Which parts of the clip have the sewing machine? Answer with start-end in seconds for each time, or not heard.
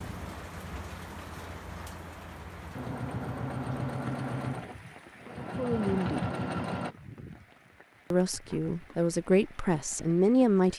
2.7-7.0.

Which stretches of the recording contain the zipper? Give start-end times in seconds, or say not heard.
not heard.